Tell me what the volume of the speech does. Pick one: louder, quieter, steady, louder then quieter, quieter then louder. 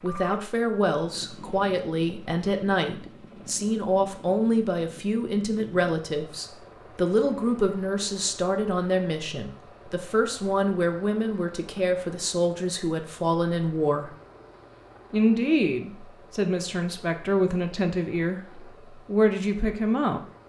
steady.